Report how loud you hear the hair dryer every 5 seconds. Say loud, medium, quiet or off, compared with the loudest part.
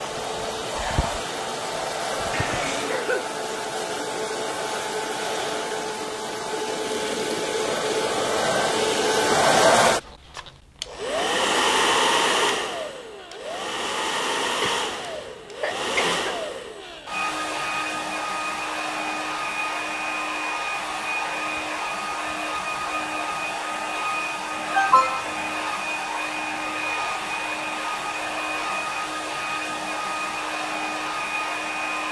medium, loud, loud, medium, medium, medium, medium.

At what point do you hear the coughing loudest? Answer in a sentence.
The volume of the coughing peaks at 25 seconds.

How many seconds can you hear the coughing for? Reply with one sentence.
The coughing can be heard for 3 seconds in total.